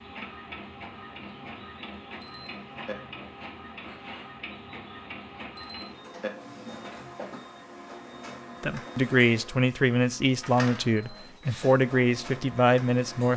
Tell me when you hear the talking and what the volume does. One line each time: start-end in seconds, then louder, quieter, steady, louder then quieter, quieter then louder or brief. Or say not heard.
8.6-13.3 steady.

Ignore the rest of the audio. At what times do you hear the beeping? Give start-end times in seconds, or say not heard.
2.2-3.0, 5.5-6.3, 10.9-11.7.